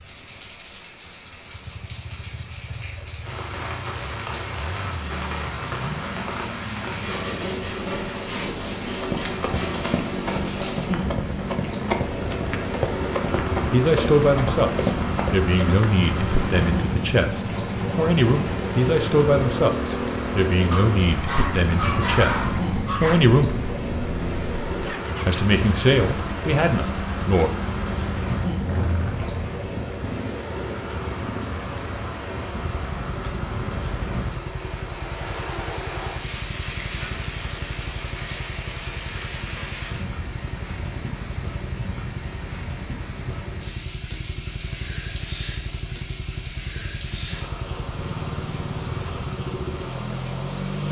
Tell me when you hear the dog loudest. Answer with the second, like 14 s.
22 s.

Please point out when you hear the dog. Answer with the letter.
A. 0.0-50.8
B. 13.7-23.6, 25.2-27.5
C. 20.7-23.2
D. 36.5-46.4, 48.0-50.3
C.